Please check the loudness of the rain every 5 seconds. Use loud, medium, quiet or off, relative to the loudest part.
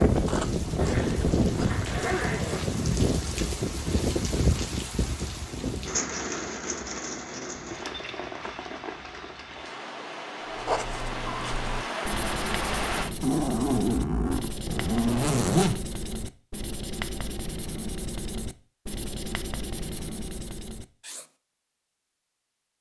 loud, medium, medium, off, off.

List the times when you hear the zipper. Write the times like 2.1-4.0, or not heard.
0.8-2.6, 13.2-15.8.